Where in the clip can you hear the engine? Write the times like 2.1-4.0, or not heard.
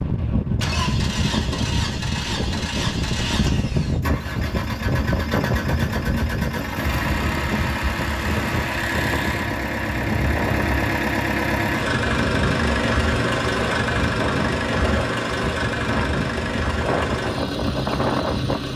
0.0-18.7.